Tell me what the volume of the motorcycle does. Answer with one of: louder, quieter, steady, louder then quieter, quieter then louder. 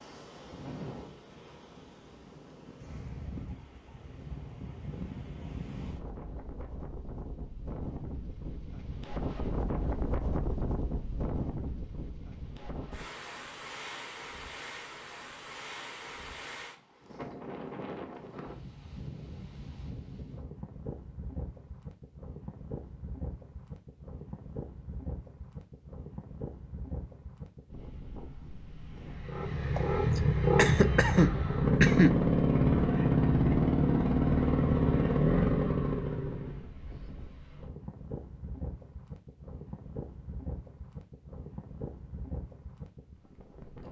steady.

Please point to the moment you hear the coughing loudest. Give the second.
32 s.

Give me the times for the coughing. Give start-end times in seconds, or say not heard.
29.8-32.2.